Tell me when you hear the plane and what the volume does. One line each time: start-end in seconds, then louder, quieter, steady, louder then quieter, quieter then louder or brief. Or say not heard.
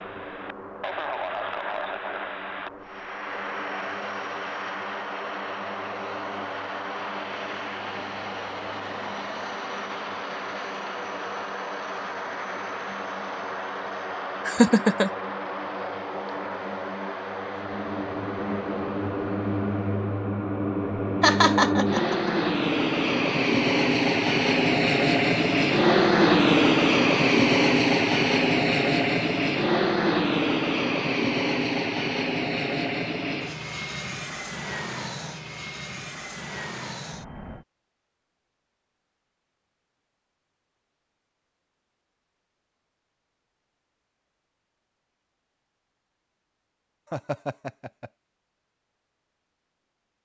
0.0-37.6 louder then quieter.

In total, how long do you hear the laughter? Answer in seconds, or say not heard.
3 s.